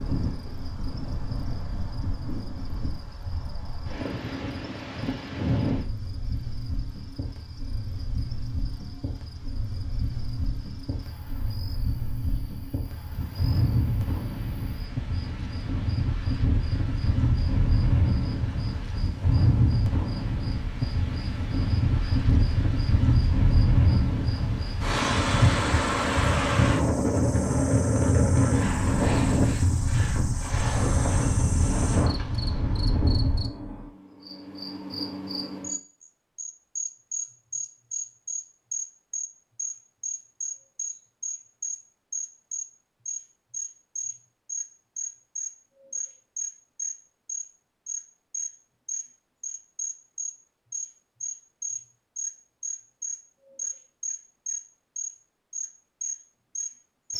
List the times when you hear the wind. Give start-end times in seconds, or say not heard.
0.0-33.5.